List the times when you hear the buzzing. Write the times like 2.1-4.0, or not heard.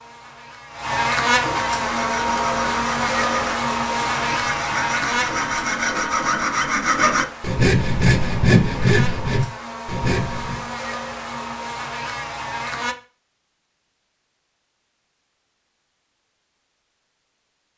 0.0-12.9.